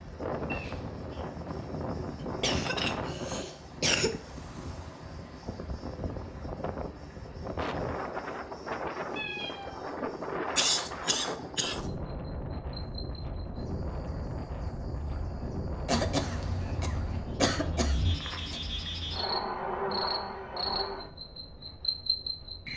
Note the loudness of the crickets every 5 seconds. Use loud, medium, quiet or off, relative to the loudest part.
quiet, quiet, quiet, loud, loud.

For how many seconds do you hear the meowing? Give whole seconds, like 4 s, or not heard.
3 s.